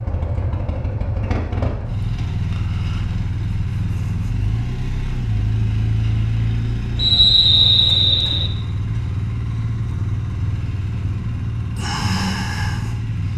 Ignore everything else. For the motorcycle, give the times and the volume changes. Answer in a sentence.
The motorcycle can be heard from 0.0 to 13.3 s, at a steady volume.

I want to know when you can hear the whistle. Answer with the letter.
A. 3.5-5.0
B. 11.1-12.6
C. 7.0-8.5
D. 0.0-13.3
C.